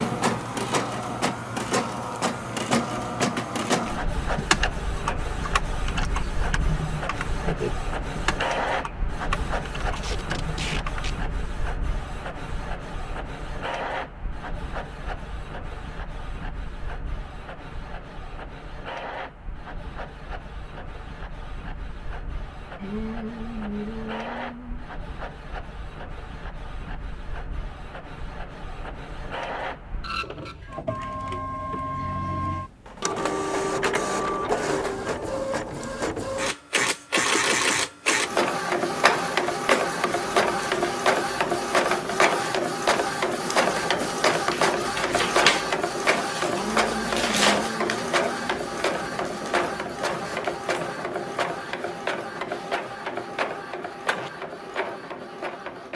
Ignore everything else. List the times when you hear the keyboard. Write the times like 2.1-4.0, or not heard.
4.3-11.4.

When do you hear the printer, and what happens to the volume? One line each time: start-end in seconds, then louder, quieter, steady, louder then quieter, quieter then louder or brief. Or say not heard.
0.0-55.9 quieter then louder.